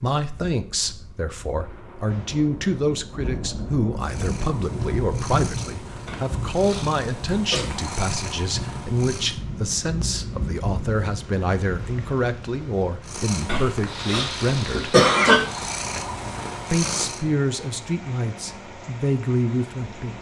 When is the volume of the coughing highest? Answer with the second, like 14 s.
15 s.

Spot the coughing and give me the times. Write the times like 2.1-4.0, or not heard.
6.0-7.7, 13.4-15.4.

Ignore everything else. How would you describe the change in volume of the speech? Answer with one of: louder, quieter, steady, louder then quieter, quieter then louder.
steady.